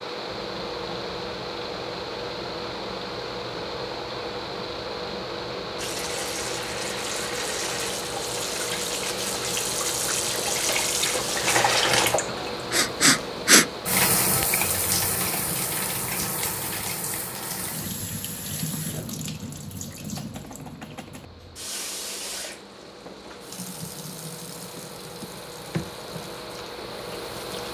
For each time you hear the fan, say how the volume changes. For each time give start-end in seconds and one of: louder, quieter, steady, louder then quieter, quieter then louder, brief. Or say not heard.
0.0-27.6 quieter then louder.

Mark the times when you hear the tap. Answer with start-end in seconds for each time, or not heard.
5.8-27.6.